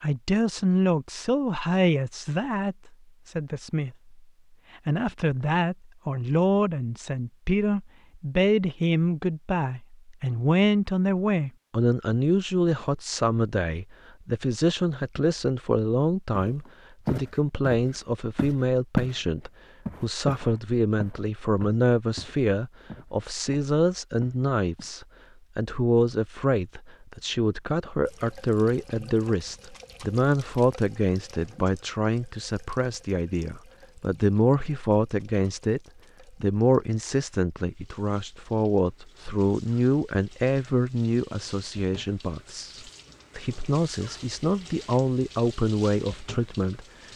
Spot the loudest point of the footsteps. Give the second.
19 s.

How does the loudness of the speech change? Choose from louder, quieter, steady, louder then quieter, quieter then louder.
steady.